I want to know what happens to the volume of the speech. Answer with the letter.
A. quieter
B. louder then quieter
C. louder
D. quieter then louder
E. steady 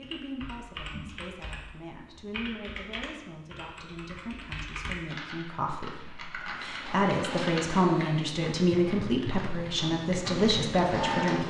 C.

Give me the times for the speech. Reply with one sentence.
The speech can be heard from 0.0 to 11.4 s.